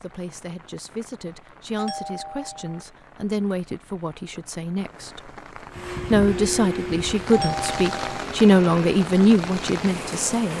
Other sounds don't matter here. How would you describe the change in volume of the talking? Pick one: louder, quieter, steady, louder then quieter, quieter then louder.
louder.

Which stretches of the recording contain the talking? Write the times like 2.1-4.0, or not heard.
0.0-5.3, 6.1-10.5.